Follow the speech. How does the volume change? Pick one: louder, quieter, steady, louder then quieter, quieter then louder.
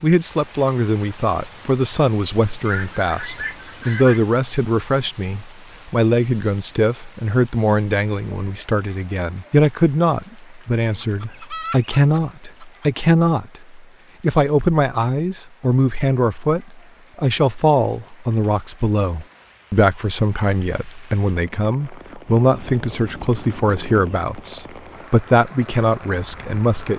steady.